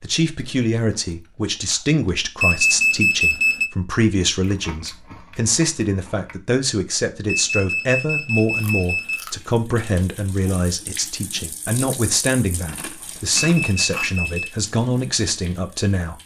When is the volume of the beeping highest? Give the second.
3 s.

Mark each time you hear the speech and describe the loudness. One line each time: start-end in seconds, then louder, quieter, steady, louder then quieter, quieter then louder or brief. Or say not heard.
0.0-16.1 steady.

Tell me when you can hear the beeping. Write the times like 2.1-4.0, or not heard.
2.4-3.7, 7.2-9.2, 13.5-14.5.